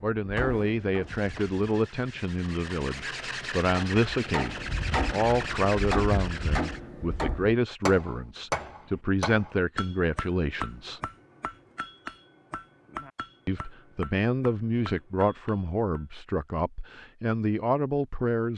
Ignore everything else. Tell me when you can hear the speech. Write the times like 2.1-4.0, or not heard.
0.0-11.0, 13.4-18.5.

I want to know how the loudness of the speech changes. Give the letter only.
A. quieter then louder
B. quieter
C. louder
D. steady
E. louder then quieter
D.